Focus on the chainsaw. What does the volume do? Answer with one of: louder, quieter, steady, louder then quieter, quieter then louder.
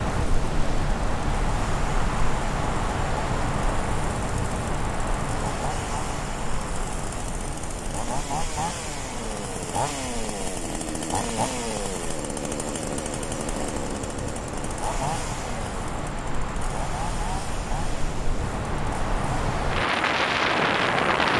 louder then quieter.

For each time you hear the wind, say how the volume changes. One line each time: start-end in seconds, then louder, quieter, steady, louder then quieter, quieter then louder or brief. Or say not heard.
0.0-21.3 quieter then louder.